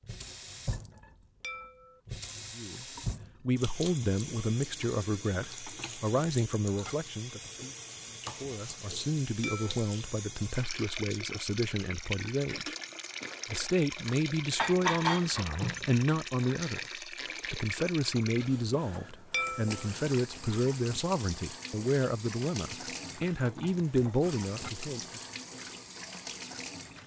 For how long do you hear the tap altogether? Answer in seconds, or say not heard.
27 s.